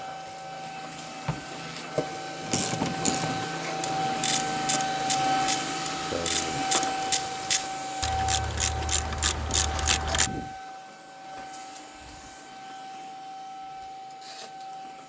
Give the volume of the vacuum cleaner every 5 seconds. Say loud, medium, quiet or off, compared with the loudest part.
loud, loud, medium.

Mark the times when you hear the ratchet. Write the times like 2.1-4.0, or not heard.
2.4-10.3.